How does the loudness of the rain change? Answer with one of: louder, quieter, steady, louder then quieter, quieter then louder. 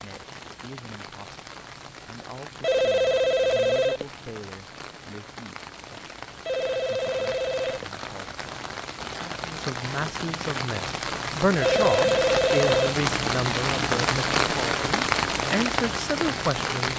louder.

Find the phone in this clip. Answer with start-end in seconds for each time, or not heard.
2.6-4.0, 6.5-7.8, 11.6-12.9.